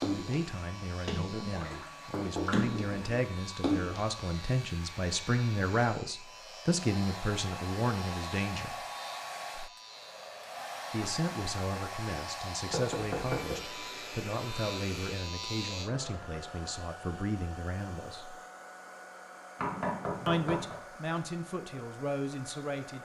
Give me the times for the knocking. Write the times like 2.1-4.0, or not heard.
1.7-3.1, 12.7-13.6, 19.6-20.8.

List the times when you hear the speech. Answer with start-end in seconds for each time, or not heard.
0.0-8.8, 10.9-18.4, 20.2-22.9.